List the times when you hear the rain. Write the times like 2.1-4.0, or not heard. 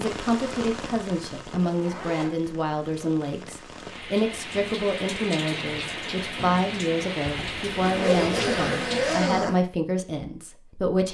0.0-9.3.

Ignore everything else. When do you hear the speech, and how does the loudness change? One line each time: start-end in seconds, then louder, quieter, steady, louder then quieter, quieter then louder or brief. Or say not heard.
0.0-11.0 steady.